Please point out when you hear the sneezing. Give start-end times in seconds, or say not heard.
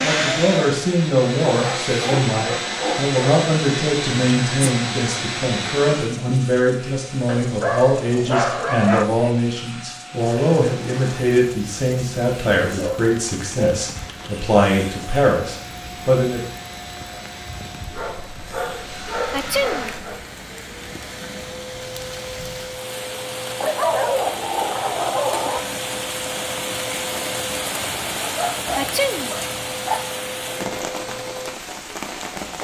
4.2-4.7, 19.3-19.9, 28.8-29.4.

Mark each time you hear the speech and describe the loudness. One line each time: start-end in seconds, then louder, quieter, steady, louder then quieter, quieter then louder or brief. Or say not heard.
0.0-16.4 steady.